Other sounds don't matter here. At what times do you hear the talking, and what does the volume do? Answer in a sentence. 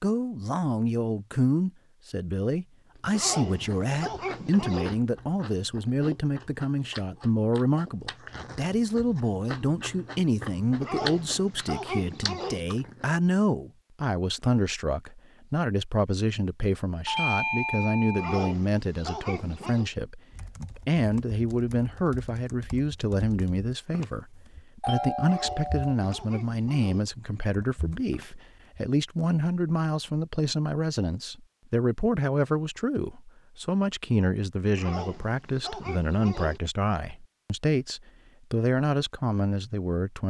The talking can be heard from 0.0 to 40.2 s, at a steady volume.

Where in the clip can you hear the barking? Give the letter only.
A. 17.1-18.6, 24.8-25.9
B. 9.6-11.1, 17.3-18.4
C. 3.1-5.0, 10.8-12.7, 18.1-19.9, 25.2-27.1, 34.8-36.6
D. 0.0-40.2
C.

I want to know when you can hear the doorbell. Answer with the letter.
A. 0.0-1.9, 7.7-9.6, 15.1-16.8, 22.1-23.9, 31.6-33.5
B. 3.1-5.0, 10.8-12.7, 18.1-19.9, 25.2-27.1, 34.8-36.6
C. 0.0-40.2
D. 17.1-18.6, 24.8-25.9
D.